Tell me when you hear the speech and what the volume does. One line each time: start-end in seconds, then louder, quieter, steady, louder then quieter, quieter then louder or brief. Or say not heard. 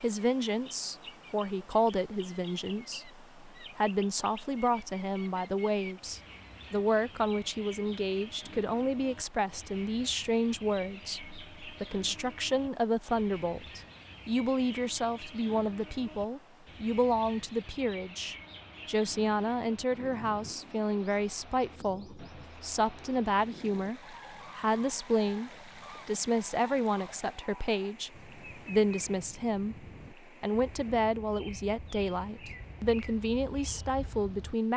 0.0-34.7 steady.